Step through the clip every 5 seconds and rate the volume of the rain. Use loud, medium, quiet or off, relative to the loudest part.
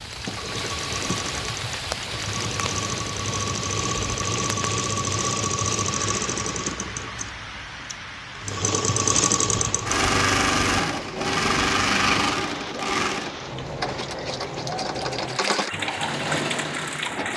loud, medium, loud, loud.